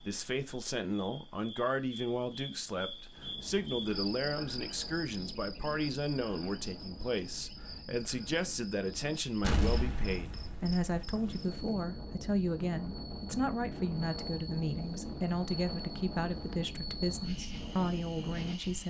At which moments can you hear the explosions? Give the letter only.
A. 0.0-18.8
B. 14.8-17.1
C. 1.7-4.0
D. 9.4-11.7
D.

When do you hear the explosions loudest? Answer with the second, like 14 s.
10 s.